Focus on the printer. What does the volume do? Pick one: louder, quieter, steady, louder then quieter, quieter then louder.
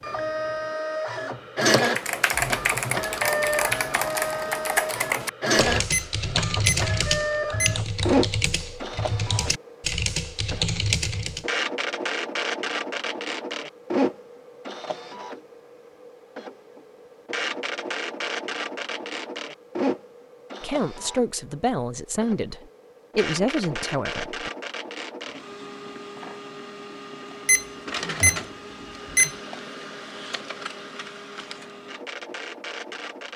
quieter.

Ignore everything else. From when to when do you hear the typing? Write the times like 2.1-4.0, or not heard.
1.8-11.4.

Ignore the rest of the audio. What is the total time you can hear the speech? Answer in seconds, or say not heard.
4 s.